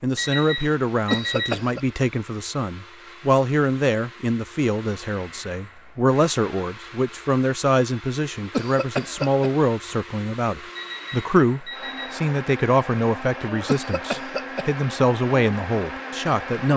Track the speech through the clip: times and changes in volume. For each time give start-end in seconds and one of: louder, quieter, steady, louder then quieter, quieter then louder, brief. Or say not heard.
0.0-16.7 steady.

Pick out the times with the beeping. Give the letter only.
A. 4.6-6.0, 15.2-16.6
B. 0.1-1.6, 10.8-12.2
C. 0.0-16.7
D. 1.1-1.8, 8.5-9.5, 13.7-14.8
B.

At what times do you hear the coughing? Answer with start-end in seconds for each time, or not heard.
1.1-1.8, 8.5-9.5, 13.7-14.8.